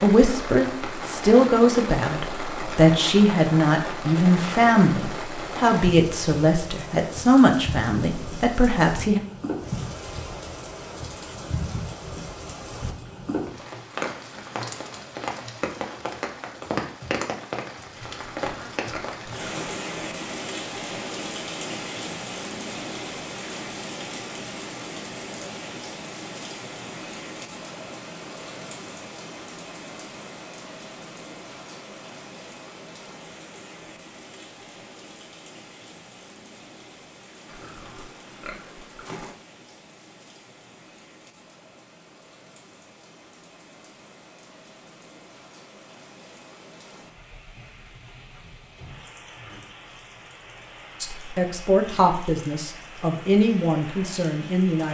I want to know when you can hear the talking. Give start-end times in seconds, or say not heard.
0.0-9.2, 51.0-54.9.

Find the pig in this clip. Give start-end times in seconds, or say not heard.
17.9-19.8, 37.5-39.4.